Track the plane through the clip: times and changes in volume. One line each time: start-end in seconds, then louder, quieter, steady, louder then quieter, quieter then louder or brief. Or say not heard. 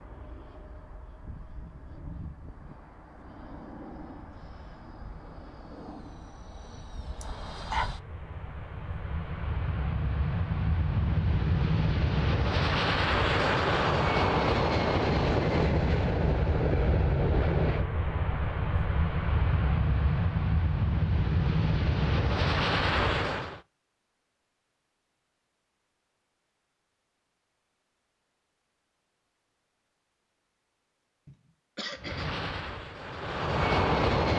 0.0-23.6 louder
32.0-34.3 brief.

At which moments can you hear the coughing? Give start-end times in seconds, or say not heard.
7.2-7.9, 31.2-32.5.